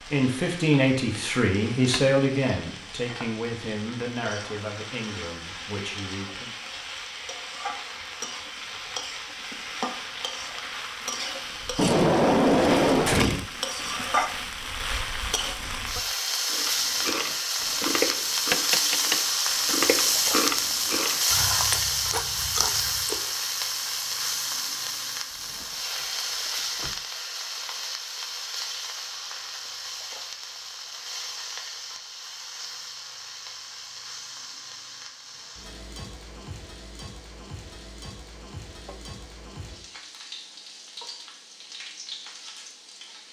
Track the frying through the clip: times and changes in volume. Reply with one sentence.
You can hear the frying from 0.0 to 43.2 s, getting louder then quieter.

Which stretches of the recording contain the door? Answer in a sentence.
The door can be heard from 11.8 to 13.5 s and from 25.3 to 26.9 s.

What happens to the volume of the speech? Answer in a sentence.
The loudness of the speech goes down.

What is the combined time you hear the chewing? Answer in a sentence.
The chewing can be heard for 7 seconds in total.